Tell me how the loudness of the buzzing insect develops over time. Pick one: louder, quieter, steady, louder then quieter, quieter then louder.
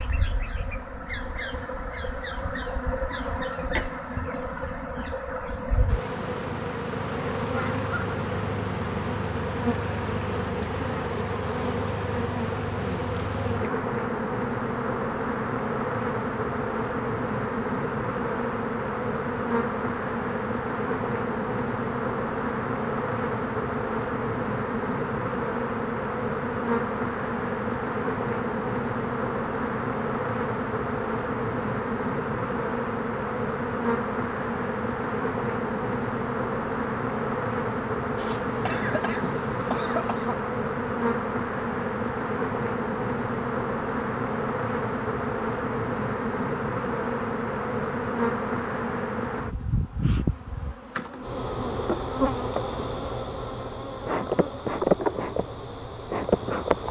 steady.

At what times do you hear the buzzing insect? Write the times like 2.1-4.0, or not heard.
0.0-56.8.